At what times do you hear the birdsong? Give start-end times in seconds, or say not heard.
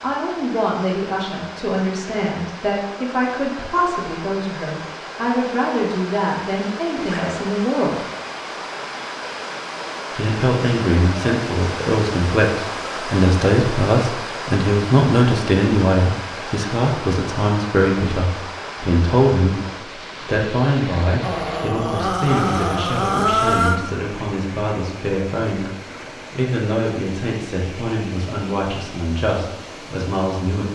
not heard.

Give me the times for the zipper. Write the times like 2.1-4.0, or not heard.
7.0-7.5.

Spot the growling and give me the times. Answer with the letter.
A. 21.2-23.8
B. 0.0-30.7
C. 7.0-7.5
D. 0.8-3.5
A.